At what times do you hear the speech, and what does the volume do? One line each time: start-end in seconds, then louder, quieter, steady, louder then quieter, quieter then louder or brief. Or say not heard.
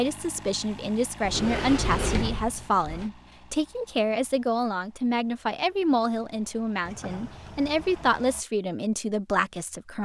0.0-10.0 steady.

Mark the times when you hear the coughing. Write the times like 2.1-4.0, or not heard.
not heard.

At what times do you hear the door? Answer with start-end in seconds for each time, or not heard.
1.2-3.1, 6.8-8.2.